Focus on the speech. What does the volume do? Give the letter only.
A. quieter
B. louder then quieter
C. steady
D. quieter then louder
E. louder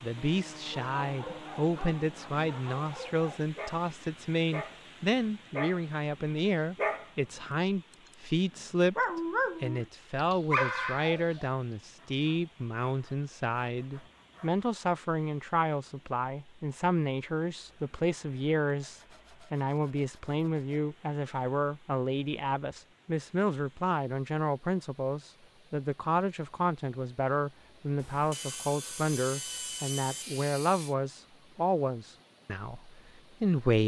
C.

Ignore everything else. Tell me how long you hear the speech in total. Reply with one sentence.
You can hear the speech for 34 seconds altogether.